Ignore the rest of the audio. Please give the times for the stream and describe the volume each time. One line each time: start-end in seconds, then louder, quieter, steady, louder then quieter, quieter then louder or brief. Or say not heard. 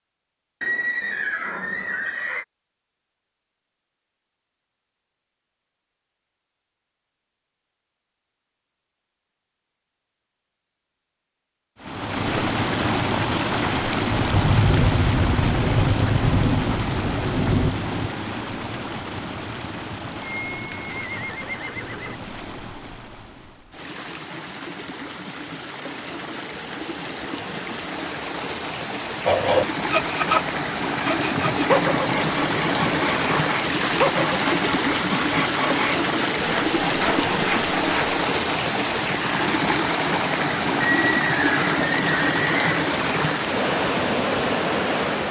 11.8-45.2 quieter then louder.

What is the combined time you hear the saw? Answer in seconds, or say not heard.
9 s.